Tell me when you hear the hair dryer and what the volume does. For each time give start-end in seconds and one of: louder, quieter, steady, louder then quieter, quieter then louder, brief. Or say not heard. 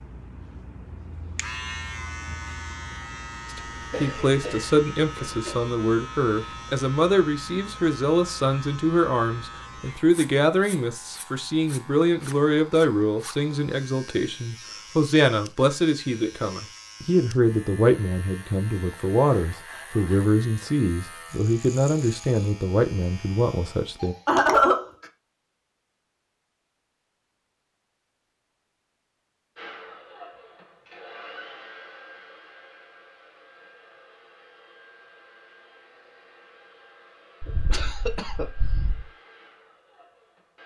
29.6-40.6 quieter.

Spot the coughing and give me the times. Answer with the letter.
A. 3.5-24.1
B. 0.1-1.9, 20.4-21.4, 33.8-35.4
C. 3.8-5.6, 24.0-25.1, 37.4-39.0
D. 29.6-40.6
C.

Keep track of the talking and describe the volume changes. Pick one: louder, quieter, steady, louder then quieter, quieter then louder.
steady.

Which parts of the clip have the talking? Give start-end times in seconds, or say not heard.
3.5-24.1.